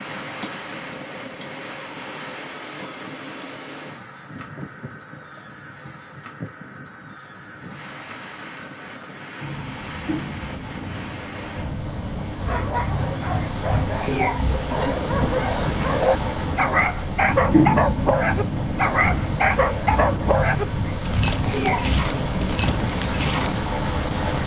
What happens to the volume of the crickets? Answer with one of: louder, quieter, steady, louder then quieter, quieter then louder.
louder.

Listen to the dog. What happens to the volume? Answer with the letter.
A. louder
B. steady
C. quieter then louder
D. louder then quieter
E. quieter
D.